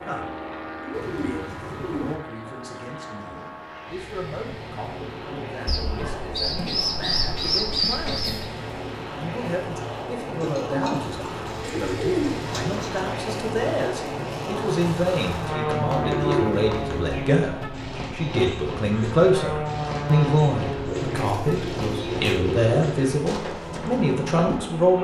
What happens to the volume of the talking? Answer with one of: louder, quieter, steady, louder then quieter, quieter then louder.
louder.